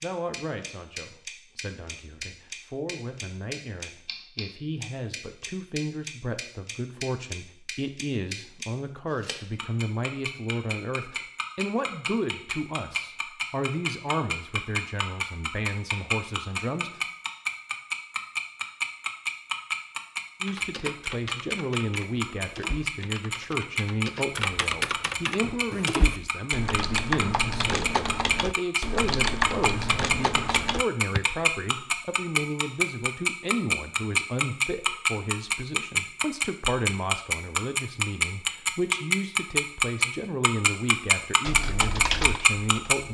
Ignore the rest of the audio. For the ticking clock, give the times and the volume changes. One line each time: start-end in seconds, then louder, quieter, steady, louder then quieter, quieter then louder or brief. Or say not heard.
0.0-43.0 louder.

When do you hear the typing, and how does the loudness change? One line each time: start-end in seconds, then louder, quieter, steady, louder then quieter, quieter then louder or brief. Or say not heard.
20.4-31.2 louder
41.5-43.0 brief.